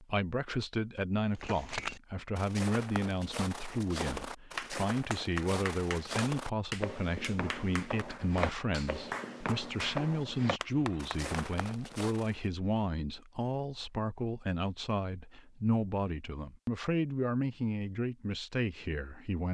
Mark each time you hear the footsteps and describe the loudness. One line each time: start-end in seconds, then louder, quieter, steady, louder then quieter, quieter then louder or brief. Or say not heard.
1.3-12.4 steady.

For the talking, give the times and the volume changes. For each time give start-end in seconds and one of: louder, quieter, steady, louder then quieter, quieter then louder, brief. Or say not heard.
0.0-19.4 steady.